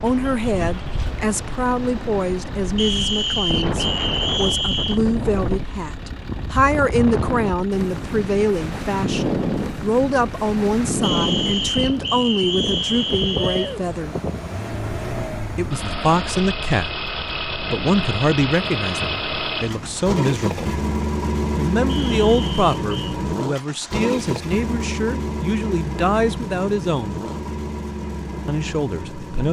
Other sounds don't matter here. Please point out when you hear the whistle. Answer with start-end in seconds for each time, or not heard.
2.8-5.0, 11.0-13.8, 21.9-23.1.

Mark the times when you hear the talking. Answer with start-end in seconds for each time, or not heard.
0.0-14.2, 15.6-20.8, 21.6-27.2, 28.4-29.4.